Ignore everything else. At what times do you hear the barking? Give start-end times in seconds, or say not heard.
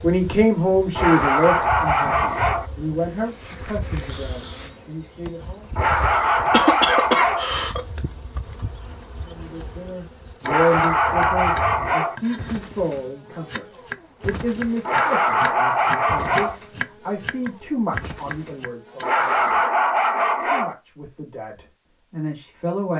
0.9-2.6, 5.8-7.5, 10.4-12.2, 14.8-16.6, 19.0-20.8.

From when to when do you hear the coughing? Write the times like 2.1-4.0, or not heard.
5.9-8.0.